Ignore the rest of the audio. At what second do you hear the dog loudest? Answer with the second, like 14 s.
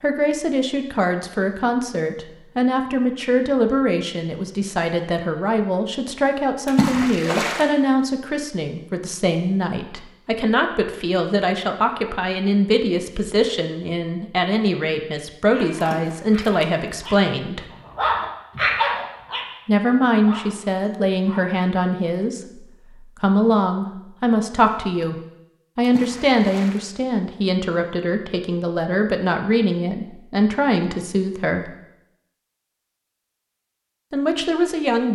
19 s.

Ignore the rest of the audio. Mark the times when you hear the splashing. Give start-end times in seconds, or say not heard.
6.7-7.7, 15.8-16.6, 25.8-26.8.